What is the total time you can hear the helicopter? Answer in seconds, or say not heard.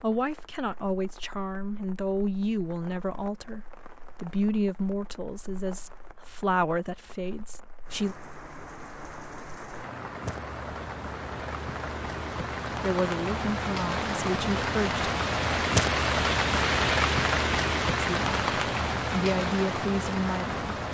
not heard.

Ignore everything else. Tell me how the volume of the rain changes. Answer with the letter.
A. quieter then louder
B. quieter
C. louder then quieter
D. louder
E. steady
D.